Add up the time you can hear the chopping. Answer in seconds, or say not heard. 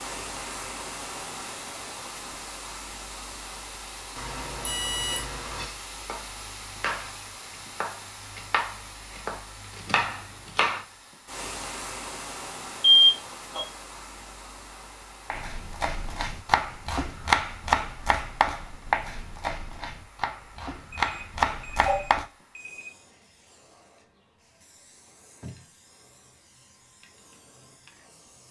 12 s.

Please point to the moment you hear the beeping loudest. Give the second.
13 s.